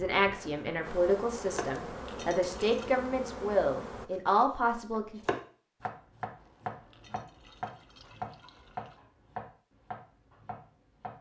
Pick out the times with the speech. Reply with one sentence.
You can hear the speech from 0.0 to 5.2 s.